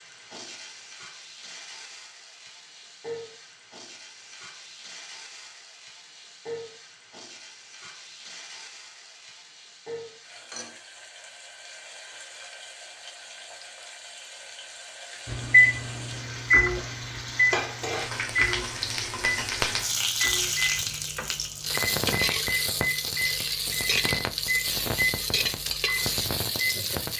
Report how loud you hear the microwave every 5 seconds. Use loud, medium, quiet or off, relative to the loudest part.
off, off, off, loud, medium, medium.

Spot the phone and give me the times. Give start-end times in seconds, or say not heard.
not heard.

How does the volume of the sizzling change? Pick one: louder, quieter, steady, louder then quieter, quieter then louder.
louder.